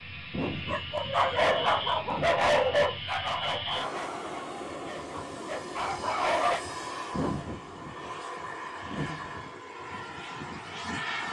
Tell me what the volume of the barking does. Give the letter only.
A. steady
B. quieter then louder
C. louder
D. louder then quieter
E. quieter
B.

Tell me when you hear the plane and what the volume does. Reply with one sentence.
You can hear the plane from 0.0 to 11.2 s, at a steady volume.